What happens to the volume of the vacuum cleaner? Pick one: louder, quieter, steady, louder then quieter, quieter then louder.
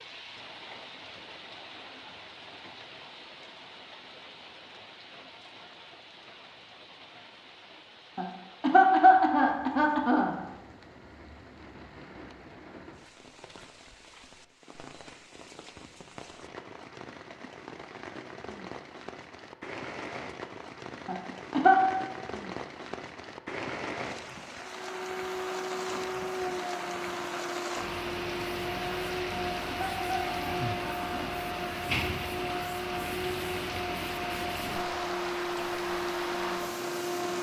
steady.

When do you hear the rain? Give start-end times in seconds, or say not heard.
0.0-37.3.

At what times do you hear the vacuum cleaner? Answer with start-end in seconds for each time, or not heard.
24.7-37.3.